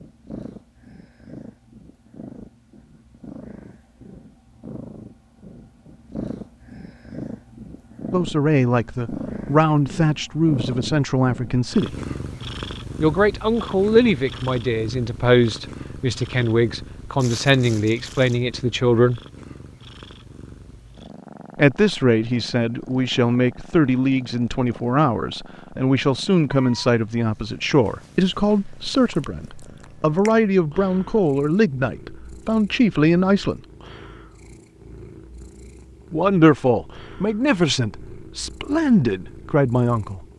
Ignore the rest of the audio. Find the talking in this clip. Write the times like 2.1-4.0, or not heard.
8.1-11.9, 13.0-19.2, 21.6-33.6, 36.1-40.2.